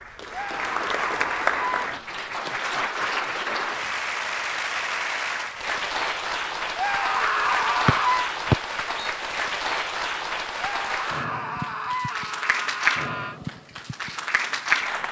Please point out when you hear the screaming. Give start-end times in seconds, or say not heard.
0.3-1.9, 6.8-8.3, 10.6-13.4.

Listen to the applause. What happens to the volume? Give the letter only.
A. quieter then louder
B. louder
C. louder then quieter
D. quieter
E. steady
E.